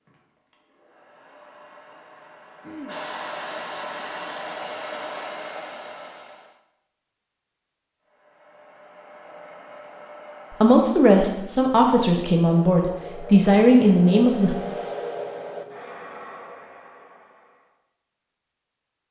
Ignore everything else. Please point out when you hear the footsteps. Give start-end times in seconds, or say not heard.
not heard.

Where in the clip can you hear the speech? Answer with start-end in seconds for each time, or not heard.
10.5-14.6.